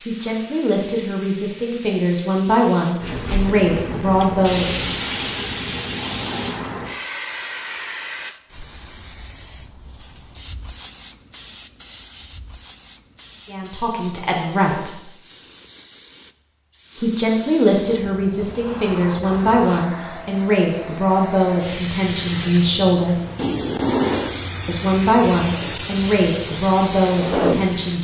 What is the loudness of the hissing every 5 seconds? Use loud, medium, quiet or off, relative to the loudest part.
loud, loud, quiet, medium, loud, loud.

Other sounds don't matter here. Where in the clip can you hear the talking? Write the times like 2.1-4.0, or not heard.
0.0-4.9, 13.5-15.0, 16.9-23.2, 24.6-27.9.